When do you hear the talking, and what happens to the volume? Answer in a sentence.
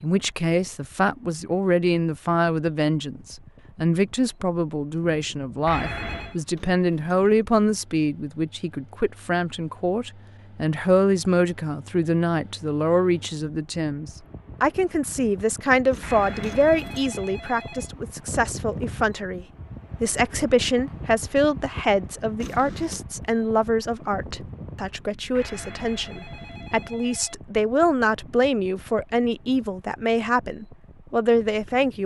You can hear the talking from 0.0 to 32.0 s, at a steady volume.